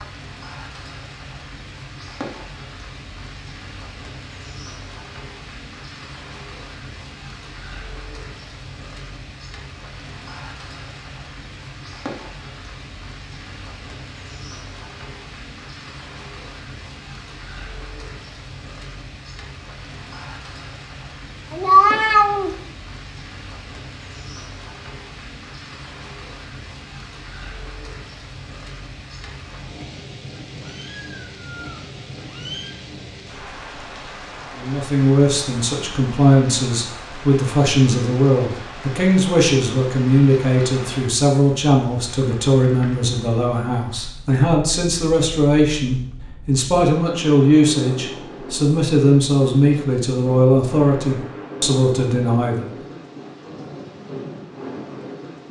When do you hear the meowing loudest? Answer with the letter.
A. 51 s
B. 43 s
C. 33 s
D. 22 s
D.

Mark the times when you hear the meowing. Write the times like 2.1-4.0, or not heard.
21.5-22.6, 30.6-32.8.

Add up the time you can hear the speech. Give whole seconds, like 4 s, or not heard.
18 s.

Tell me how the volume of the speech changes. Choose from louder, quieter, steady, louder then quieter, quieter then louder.
steady.